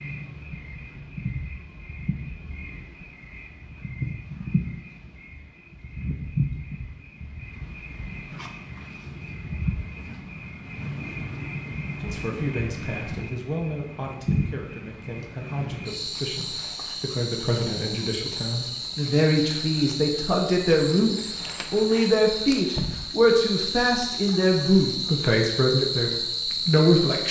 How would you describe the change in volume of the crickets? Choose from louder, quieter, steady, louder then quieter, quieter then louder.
louder.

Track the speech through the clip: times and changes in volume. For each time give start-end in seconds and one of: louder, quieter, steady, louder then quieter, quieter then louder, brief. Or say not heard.
12.0-27.2 louder.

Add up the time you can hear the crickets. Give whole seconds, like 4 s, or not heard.
27 s.